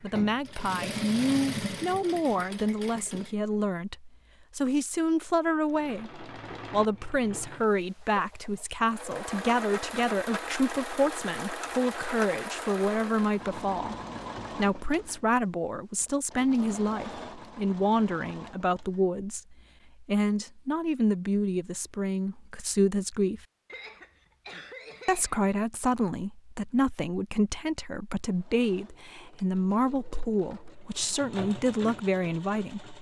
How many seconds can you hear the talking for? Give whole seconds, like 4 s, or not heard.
31 s.